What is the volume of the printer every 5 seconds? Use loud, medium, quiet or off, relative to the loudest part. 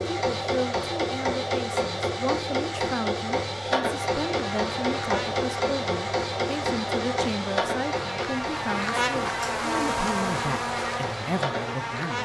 loud, loud, medium.